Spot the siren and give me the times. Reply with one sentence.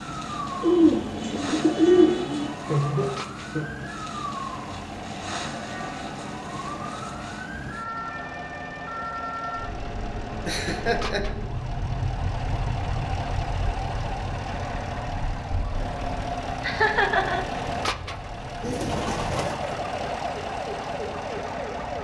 You can hear the siren from 0.0 to 21.9 s.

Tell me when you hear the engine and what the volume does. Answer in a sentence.
You can hear the engine from 0.0 to 21.9 s, getting louder.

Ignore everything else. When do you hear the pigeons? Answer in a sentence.
You can hear the pigeons from 0.6 to 2.5 s and from 18.6 to 19.8 s.